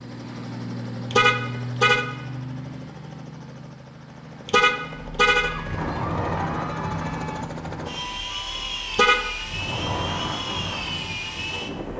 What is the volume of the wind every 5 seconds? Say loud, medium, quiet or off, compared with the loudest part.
off, loud, loud.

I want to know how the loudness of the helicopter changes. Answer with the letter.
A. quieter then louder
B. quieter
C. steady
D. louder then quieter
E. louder
A.